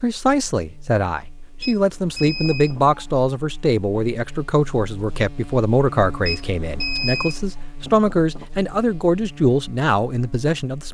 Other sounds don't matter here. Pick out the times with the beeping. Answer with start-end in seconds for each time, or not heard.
1.6-3.1, 6.2-7.5.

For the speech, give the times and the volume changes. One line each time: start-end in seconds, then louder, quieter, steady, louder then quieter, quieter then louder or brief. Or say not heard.
0.0-10.8 steady.